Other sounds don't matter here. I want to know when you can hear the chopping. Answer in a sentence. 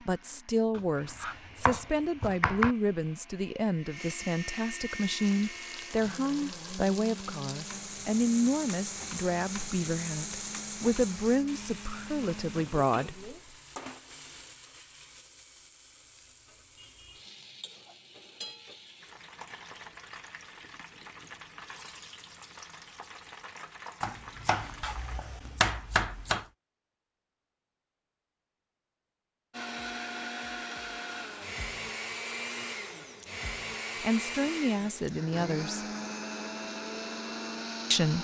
The chopping can be heard from 0.8 to 2.8 s and from 24.0 to 26.4 s.